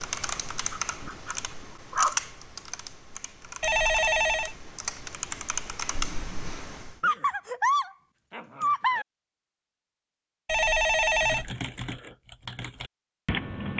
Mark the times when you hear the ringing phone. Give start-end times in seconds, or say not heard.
3.6-4.5, 10.4-11.5.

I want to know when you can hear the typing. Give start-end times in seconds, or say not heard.
0.0-7.0, 11.1-13.7.